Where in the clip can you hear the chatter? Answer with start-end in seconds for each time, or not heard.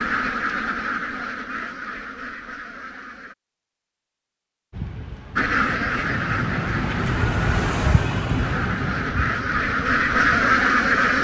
not heard.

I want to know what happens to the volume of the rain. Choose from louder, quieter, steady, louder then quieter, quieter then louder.
louder then quieter.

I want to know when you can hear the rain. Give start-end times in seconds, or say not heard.
4.7-11.1.